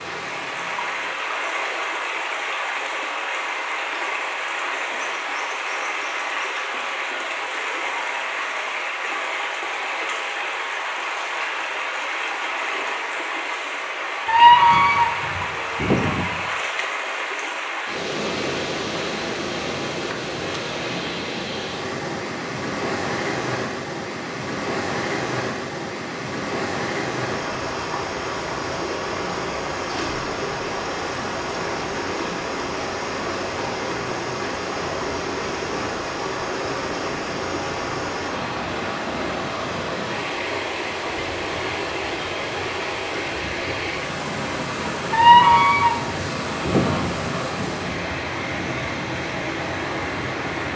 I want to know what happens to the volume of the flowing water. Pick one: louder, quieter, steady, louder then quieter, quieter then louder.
steady.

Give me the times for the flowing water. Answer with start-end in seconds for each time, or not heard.
0.0-50.7.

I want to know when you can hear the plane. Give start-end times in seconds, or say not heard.
not heard.